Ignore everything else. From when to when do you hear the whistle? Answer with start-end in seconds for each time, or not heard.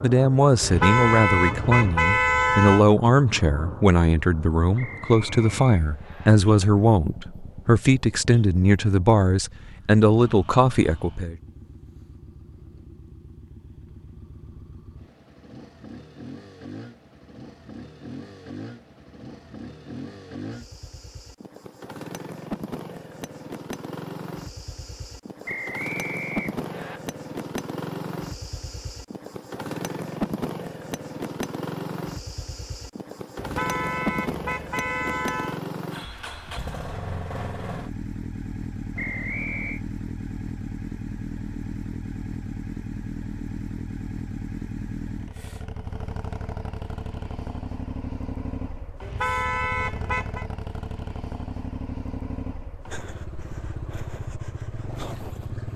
4.8-6.3, 25.4-27.0, 39.0-39.8.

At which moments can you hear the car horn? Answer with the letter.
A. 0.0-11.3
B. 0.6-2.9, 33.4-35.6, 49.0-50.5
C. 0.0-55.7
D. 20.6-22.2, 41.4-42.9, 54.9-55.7
B.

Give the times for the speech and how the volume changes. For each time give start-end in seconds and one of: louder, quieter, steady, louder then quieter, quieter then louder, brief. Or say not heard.
0.0-11.3 steady.